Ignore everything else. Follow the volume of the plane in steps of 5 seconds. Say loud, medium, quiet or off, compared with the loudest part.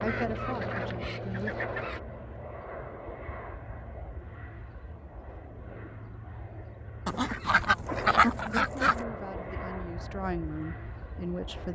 loud, loud, medium.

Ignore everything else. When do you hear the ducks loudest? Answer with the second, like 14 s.
8 s.